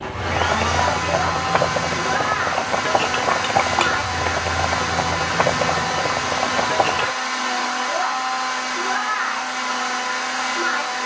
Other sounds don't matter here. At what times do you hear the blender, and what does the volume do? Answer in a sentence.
You can hear the blender from 0.0 to 11.0 s, at a steady volume.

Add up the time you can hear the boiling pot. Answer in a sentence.
You can hear the boiling pot for 7 seconds altogether.